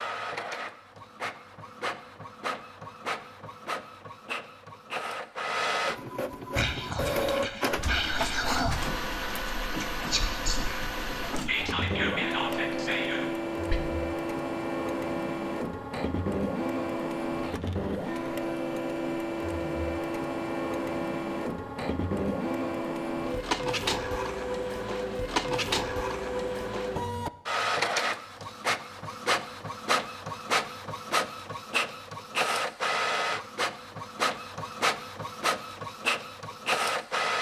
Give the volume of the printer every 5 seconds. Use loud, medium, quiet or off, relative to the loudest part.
medium, loud, loud, loud, loud, loud, loud, loud.